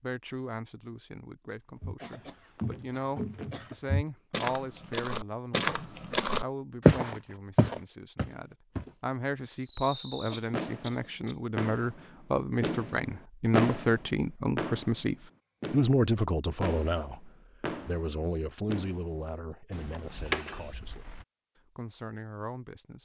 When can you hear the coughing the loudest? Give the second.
20 s.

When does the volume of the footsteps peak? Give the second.
7 s.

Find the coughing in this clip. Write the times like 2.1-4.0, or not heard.
2.0-3.8, 10.3-11.3, 19.9-20.7.